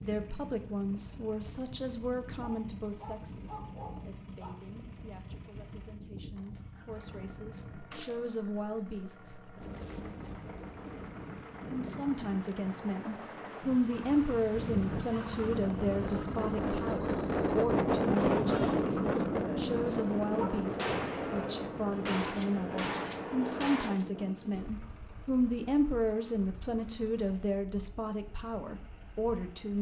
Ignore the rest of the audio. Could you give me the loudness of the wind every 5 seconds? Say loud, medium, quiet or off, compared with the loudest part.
quiet, quiet, quiet, loud, medium, quiet.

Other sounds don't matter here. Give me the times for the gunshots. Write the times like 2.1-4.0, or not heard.
7.9-8.3, 20.8-24.1.